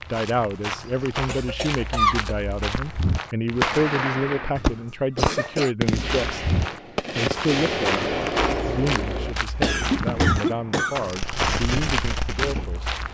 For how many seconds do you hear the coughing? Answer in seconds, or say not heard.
4 s.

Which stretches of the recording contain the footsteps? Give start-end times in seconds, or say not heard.
0.0-3.9, 5.9-13.1.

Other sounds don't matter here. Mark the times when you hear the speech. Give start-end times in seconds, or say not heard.
0.1-6.5, 7.1-12.9.